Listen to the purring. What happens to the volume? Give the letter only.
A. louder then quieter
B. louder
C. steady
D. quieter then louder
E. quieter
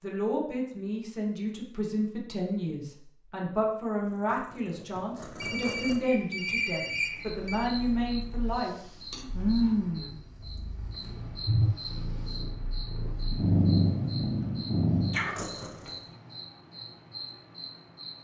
D.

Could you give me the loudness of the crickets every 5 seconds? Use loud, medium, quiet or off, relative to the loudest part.
off, loud, quiet, quiet.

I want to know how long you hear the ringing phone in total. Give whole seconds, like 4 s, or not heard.
2 s.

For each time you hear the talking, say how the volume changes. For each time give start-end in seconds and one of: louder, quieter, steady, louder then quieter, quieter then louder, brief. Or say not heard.
0.0-8.8 steady.